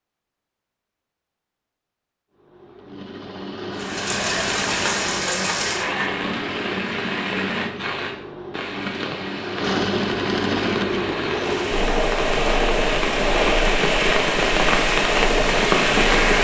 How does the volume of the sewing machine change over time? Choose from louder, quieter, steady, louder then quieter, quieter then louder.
louder.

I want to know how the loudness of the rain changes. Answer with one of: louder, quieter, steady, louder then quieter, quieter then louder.
quieter then louder.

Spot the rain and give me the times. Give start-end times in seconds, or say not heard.
3.8-16.3.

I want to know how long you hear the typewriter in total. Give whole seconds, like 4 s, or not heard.
not heard.